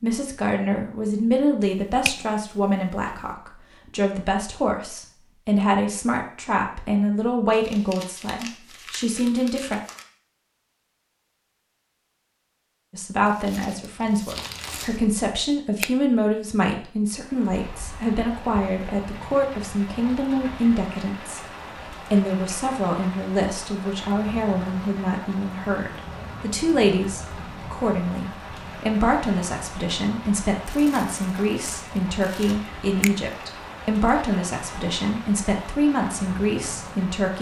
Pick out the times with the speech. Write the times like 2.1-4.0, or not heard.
0.0-9.8, 12.9-21.4, 22.1-37.3.